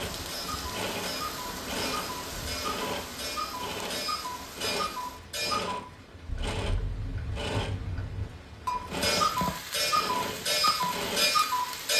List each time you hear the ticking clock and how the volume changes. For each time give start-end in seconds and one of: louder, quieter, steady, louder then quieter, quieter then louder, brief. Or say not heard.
0.1-11.9 louder.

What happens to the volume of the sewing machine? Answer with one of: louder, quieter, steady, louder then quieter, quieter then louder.
steady.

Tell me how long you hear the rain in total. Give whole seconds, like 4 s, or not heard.
12 s.